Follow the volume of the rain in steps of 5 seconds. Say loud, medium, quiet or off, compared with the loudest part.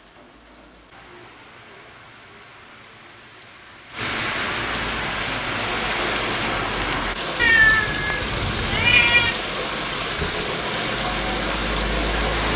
medium, loud, loud.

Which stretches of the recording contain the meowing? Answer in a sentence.
You can hear the meowing from 7.3 to 9.3 s.